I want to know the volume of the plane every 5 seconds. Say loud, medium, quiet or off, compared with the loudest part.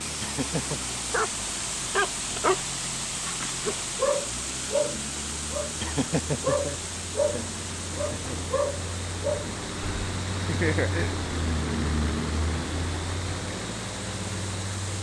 medium, medium, loud.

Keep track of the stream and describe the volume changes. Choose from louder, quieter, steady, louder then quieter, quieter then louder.
quieter.